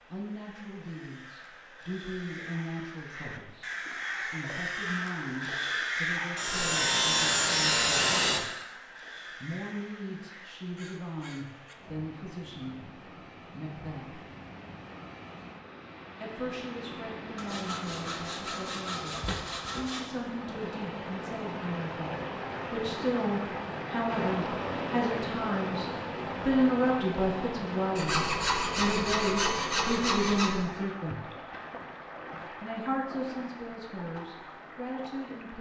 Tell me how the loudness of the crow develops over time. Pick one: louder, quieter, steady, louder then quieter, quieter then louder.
louder then quieter.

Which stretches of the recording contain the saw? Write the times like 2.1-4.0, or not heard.
6.3-8.4, 17.4-20.1, 27.9-30.6.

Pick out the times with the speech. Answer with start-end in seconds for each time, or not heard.
0.1-14.2, 16.2-25.9, 26.4-31.2, 32.6-35.5.